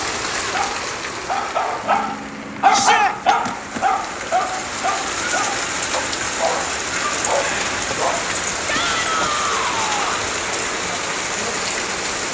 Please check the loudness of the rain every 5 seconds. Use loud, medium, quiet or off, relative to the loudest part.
medium, loud, loud.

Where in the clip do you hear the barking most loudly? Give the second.
3 s.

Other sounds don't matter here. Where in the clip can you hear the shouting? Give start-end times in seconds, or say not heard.
2.7-3.1, 8.7-10.3.